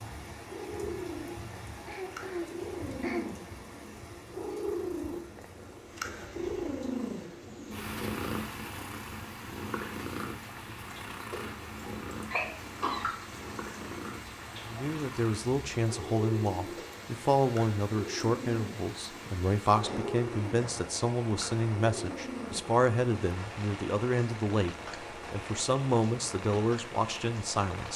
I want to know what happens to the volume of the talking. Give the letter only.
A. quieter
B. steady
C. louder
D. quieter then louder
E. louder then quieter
B.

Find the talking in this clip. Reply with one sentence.
You can hear the talking from 14.7 to 27.9 s.